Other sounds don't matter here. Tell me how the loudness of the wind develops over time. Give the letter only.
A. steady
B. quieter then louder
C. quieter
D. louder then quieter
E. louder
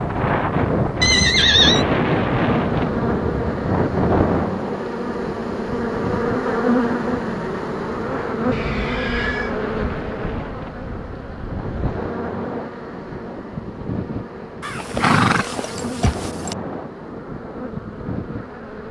C.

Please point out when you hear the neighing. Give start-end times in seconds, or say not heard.
1.0-1.9, 8.5-9.6, 14.6-16.6.